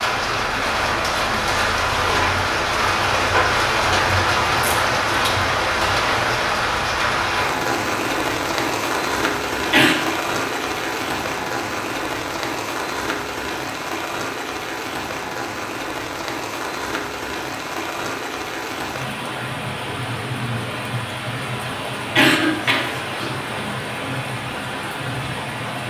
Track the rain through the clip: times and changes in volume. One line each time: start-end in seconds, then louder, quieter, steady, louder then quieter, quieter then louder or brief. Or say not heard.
0.0-25.8 quieter.